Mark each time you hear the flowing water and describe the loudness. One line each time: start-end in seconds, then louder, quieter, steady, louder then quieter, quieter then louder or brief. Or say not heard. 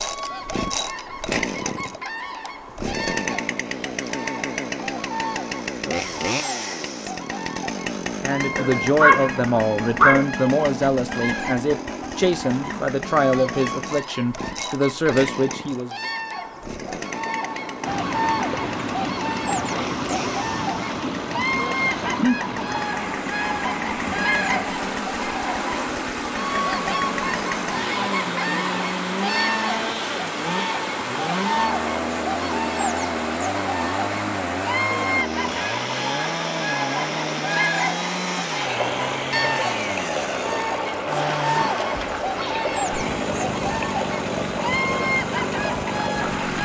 17.8-46.6 steady.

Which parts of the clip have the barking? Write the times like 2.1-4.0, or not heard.
8.6-10.2.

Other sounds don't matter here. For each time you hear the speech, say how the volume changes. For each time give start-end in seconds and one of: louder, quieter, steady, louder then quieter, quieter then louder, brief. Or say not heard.
8.2-15.9 steady.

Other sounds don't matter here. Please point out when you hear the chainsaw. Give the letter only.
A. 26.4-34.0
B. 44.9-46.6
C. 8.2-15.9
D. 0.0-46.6
D.